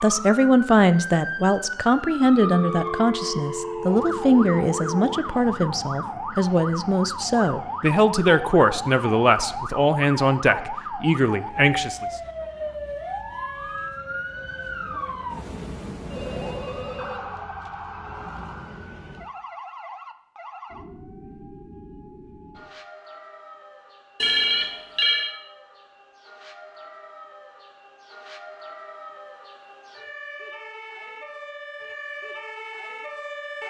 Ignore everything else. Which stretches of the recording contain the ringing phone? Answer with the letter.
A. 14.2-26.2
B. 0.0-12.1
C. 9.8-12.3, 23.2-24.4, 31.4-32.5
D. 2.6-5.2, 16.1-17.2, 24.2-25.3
D.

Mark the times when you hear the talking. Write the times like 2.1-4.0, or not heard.
0.0-12.1.